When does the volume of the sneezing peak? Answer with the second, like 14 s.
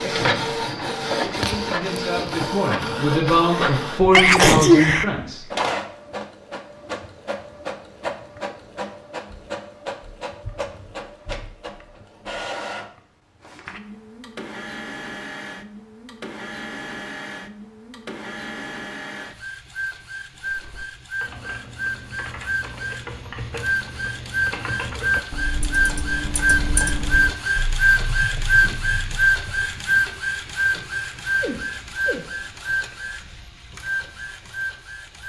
5 s.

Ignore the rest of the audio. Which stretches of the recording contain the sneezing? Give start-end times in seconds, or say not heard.
3.5-5.0, 31.4-32.3.